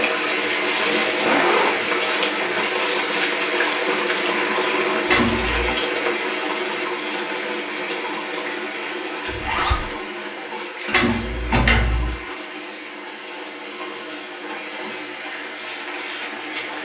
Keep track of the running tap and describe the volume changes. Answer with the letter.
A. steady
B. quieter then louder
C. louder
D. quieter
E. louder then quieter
D.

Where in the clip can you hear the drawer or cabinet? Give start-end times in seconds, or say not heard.
5.0-5.8, 10.9-12.2.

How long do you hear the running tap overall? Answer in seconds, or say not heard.
17 s.